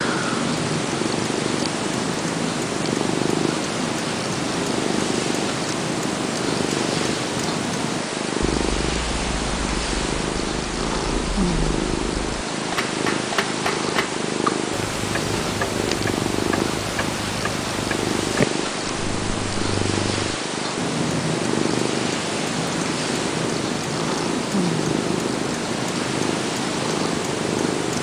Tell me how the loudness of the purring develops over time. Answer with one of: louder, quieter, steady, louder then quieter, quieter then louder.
steady.